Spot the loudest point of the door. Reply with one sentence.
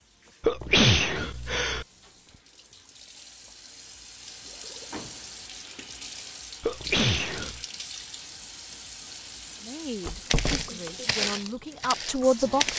The loudest moment of the door is at 10 seconds.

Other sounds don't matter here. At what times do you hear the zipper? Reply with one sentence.
The zipper can't be heard in this clip.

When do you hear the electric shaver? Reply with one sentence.
The electric shaver can't be heard in this clip.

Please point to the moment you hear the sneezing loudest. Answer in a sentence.
The loudest moment of the sneezing is at 1 second.